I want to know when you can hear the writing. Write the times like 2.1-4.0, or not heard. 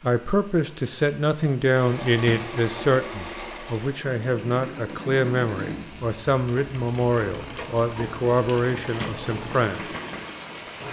not heard.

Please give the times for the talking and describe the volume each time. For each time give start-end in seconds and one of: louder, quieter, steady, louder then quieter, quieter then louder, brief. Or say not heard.
0.0-9.8 steady.